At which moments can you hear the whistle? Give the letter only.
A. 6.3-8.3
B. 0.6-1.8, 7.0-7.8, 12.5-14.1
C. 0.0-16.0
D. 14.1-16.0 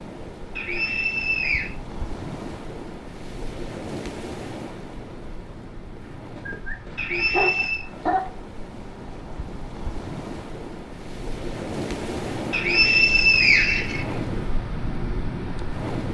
B.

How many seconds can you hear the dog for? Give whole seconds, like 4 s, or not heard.
2 s.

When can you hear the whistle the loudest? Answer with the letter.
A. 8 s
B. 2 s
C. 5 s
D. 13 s
D.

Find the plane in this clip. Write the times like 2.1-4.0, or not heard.
not heard.